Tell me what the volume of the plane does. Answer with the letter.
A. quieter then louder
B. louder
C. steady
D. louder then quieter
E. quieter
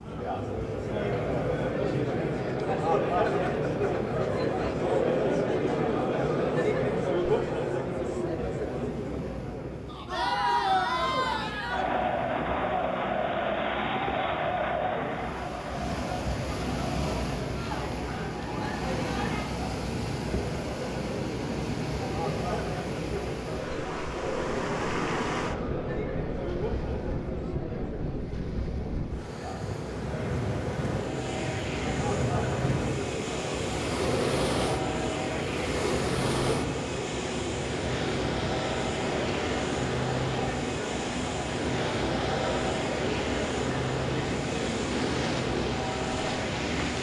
C.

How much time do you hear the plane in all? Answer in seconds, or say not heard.
16 s.